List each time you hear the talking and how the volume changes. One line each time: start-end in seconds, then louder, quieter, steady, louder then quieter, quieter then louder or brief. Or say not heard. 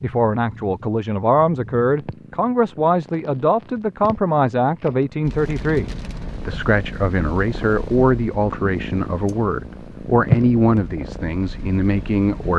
0.0-12.5 steady.